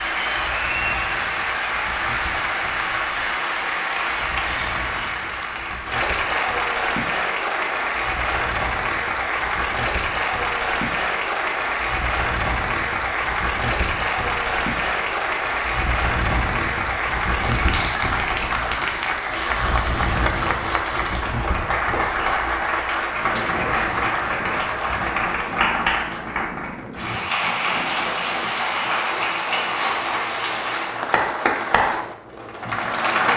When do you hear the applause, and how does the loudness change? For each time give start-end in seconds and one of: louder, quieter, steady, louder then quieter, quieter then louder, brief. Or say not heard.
0.0-33.3 steady.